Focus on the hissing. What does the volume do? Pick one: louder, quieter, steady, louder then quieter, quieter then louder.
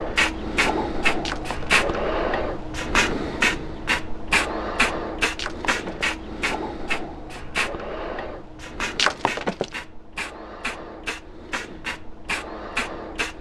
quieter.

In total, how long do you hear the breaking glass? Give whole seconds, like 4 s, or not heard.
2 s.